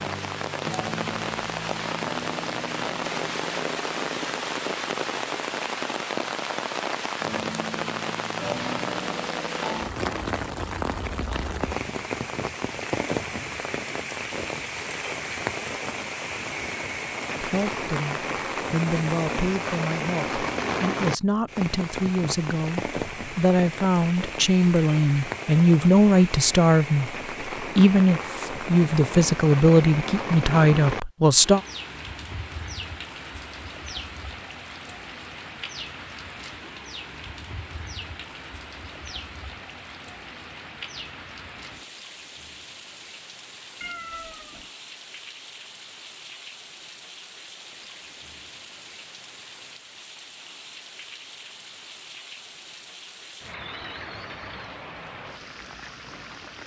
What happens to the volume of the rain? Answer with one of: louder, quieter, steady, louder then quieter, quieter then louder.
quieter.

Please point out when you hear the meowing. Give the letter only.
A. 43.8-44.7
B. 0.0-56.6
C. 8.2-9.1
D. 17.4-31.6
A.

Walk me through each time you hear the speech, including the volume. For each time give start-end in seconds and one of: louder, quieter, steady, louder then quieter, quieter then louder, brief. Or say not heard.
17.4-31.6 louder.